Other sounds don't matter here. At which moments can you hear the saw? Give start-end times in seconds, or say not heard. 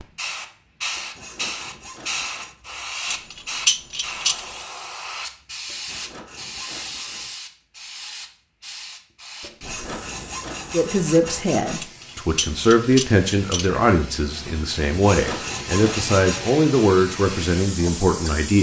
0.9-2.6, 5.7-7.3, 9.4-11.9, 14.8-16.6.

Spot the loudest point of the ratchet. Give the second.
4 s.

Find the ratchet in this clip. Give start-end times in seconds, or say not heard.
3.0-4.7, 11.8-13.7.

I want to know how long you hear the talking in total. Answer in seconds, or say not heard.
8 s.